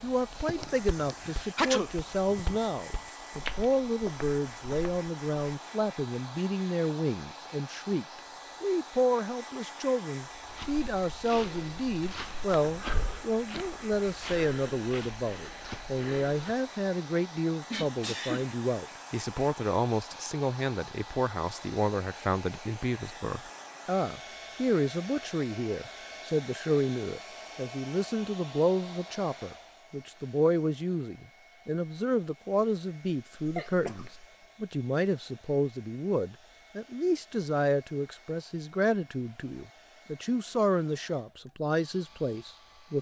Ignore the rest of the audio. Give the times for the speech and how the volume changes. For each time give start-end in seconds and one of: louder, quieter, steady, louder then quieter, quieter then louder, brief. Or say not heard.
0.0-42.9 steady.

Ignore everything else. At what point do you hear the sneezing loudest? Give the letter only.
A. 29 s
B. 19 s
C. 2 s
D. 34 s
C.